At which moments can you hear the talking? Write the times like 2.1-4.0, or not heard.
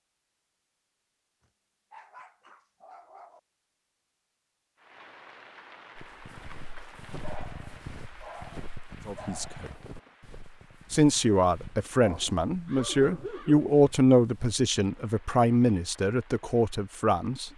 9.1-9.7, 10.9-17.5.